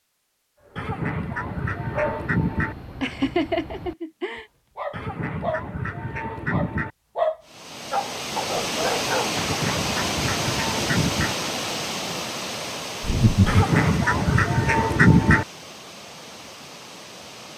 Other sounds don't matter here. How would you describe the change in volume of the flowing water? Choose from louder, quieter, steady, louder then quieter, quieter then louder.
quieter.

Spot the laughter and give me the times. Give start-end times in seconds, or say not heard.
3.0-4.5, 13.0-13.7.